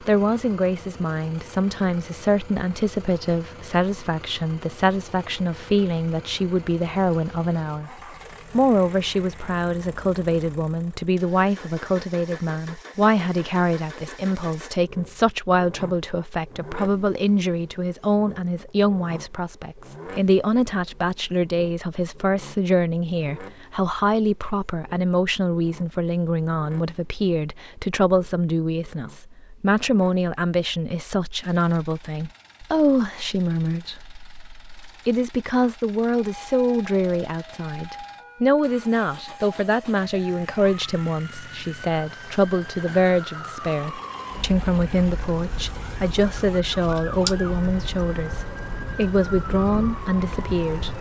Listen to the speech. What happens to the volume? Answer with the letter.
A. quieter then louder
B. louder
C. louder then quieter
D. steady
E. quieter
D.